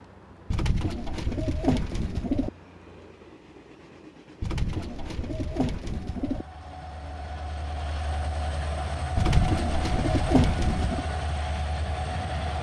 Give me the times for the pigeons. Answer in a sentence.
The pigeons can be heard from 0.5 to 2.5 s, from 4.4 to 6.5 s and from 9.2 to 11.1 s.